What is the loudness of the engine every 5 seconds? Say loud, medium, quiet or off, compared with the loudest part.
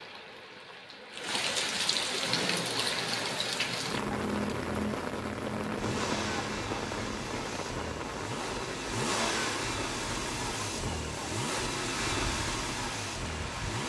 medium, loud, loud.